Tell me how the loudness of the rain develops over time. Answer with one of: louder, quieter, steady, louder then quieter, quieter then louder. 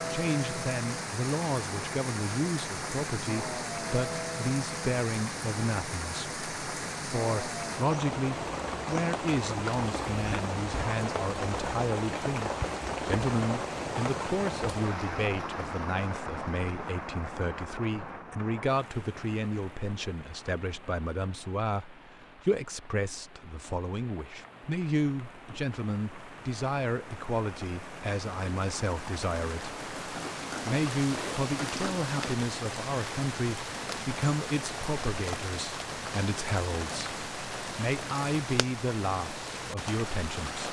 quieter then louder.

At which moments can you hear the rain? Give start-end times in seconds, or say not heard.
0.0-40.6.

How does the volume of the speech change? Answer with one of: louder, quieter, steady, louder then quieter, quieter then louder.
steady.